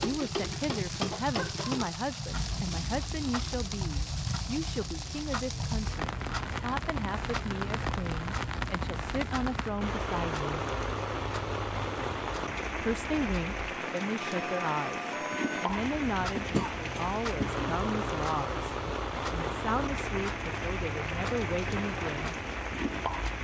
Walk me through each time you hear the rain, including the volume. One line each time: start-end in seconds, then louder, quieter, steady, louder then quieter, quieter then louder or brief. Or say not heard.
0.0-23.3 steady.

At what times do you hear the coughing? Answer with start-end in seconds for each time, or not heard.
1.1-1.9, 16.4-17.7.